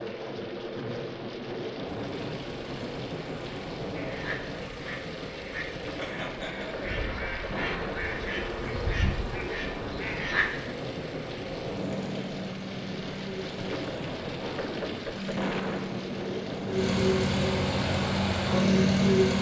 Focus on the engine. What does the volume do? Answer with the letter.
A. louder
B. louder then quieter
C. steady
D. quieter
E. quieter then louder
A.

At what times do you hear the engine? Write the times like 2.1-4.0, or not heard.
1.9-19.3.